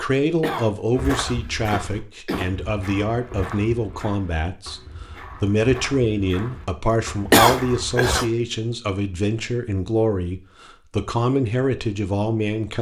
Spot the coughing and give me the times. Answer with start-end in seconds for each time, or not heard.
0.4-2.5, 7.3-8.2.